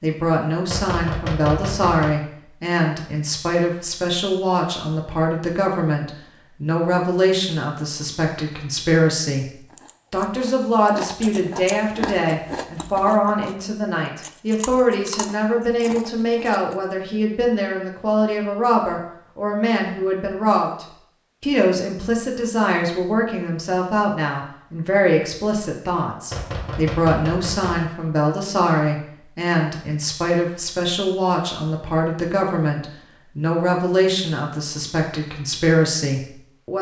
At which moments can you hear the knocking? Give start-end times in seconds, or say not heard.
0.7-2.1, 26.3-27.9.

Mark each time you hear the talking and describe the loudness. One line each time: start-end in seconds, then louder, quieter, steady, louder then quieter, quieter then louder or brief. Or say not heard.
0.0-36.7 steady.